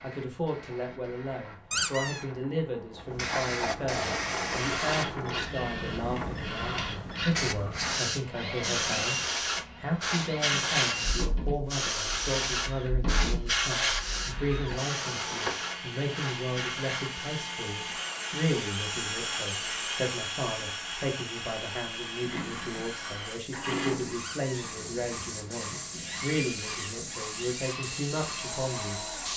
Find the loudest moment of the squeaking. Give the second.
2 s.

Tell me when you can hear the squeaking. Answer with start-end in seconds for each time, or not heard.
1.7-2.2, 14.5-15.6, 24.1-24.7.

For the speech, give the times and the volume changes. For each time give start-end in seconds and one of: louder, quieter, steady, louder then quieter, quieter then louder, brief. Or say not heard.
0.0-9.2 steady
9.8-29.1 steady.